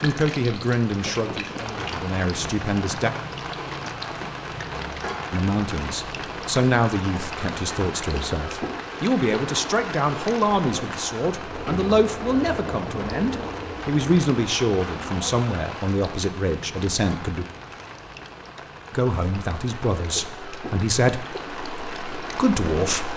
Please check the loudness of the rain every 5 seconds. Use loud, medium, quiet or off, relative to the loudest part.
loud, loud, loud, medium, loud.